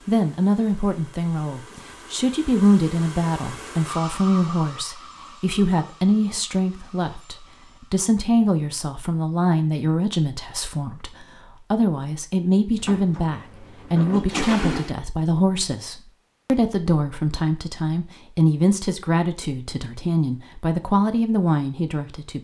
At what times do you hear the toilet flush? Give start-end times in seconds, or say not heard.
12.8-14.9.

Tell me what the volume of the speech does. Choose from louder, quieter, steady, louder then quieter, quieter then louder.
steady.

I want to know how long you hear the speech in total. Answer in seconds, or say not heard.
22 s.